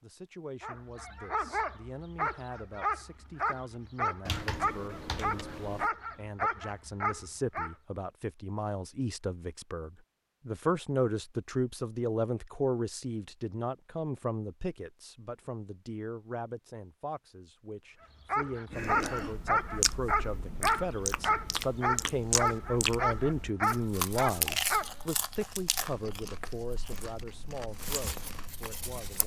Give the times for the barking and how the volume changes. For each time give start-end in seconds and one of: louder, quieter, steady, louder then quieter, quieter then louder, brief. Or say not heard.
0.6-7.8 steady
18.2-24.9 steady.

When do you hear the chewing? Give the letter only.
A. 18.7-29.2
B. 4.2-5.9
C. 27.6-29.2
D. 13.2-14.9
A.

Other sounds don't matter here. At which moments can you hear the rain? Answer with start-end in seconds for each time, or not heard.
not heard.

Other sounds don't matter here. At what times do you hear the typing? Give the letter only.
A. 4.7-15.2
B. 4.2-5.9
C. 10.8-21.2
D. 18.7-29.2
B.